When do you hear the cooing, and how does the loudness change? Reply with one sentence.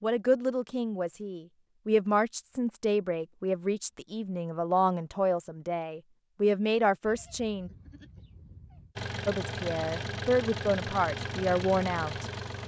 You can't hear the cooing here.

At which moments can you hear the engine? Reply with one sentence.
The engine can be heard from 8.9 to 12.6 s.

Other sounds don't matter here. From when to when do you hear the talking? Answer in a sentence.
You can hear the talking from 0.0 to 7.7 s and from 9.2 to 12.2 s.